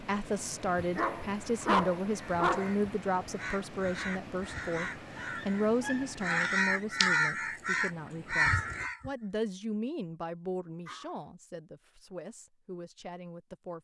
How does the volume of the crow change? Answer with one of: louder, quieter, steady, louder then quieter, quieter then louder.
louder.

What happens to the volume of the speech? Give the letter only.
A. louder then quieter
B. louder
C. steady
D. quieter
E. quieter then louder
D.